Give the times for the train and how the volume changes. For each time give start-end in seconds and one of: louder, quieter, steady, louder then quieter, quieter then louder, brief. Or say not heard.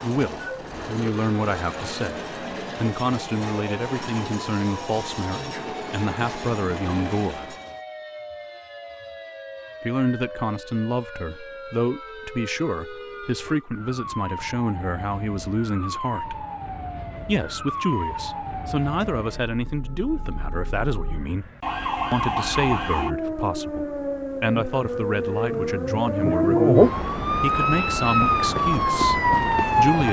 0.0-7.8 steady.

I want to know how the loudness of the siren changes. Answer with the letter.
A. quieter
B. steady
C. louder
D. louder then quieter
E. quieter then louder
C.